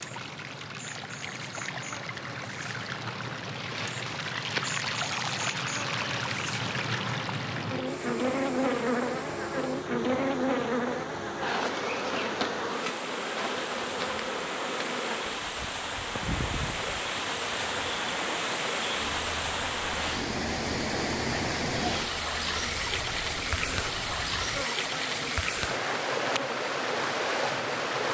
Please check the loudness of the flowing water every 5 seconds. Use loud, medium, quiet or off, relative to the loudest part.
medium, medium, medium, loud, loud, loud.